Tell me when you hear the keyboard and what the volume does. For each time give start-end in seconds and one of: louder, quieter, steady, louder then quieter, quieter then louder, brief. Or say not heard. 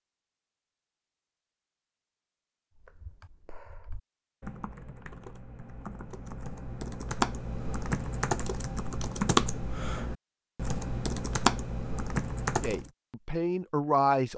2.9-12.9 louder.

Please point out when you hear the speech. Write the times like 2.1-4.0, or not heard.
12.6-14.3.